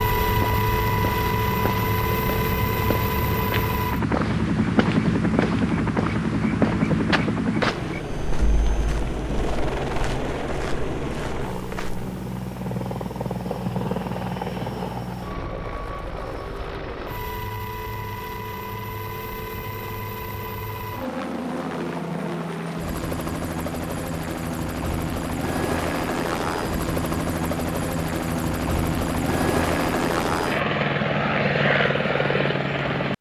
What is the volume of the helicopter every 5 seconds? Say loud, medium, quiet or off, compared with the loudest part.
loud, loud, medium, medium, medium, loud, loud.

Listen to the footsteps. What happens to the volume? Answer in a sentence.
The volume of the footsteps goes down.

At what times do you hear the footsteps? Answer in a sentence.
The footsteps can be heard from 0.2 to 12.1 s.